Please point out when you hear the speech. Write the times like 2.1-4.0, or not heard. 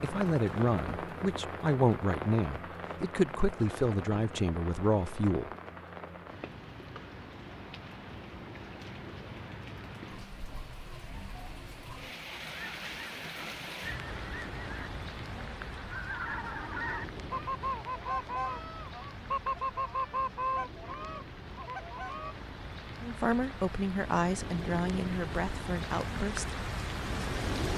0.0-5.5, 23.0-26.5.